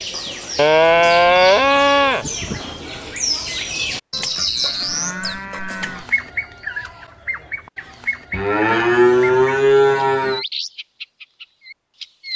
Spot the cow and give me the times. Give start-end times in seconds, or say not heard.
0.6-2.6, 4.1-6.0, 8.3-10.4.